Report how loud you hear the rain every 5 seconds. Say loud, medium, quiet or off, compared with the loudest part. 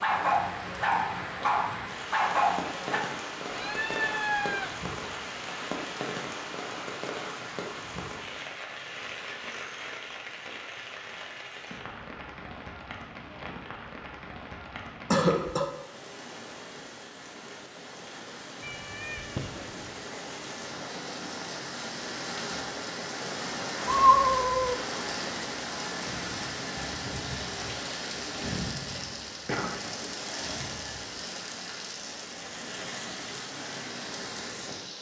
loud, loud, medium, medium, loud, loud, loud.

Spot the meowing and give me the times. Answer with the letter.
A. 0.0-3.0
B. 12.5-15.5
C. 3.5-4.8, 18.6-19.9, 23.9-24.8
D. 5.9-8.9
C.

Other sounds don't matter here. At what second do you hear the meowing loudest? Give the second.
24 s.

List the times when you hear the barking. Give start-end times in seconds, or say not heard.
0.0-3.0.